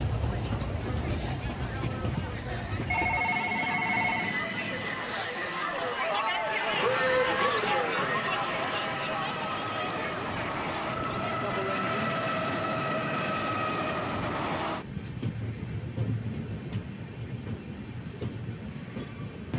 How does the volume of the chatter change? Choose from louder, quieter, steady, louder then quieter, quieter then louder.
louder then quieter.